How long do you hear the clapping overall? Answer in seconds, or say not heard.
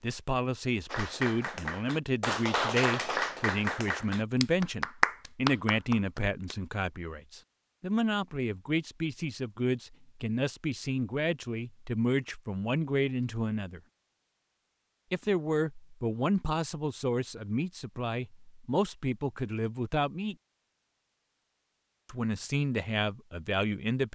6 s.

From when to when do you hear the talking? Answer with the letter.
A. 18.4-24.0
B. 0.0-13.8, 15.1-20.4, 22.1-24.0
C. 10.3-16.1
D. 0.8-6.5
B.